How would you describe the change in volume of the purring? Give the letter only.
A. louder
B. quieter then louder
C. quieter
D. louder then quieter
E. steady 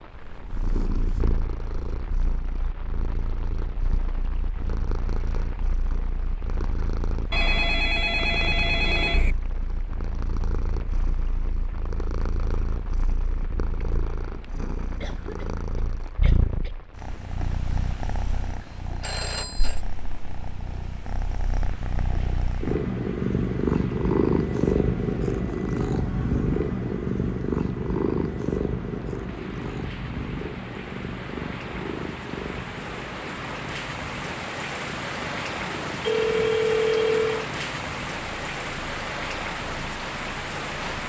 D.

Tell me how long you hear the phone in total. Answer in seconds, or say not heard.
4 s.